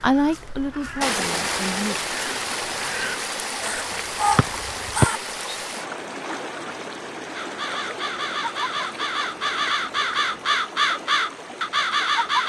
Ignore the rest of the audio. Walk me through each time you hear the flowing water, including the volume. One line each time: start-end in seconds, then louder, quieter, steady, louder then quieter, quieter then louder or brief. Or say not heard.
0.1-12.4 quieter.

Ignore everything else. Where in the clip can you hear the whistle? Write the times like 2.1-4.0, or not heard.
4.3-5.5.